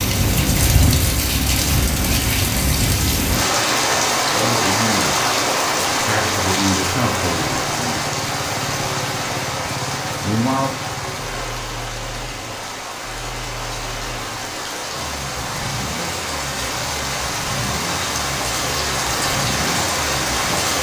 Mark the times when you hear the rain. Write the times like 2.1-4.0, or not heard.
0.0-20.7.